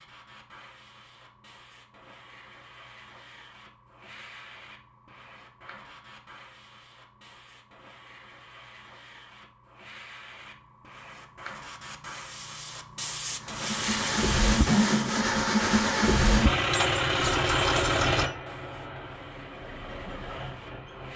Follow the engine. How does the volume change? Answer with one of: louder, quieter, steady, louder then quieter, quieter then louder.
quieter.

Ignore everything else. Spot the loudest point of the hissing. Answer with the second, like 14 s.
14 s.